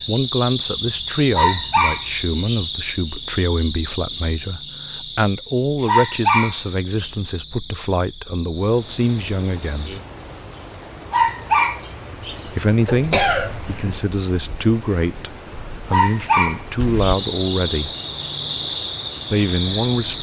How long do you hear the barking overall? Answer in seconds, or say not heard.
5 s.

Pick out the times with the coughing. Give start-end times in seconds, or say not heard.
12.8-14.0.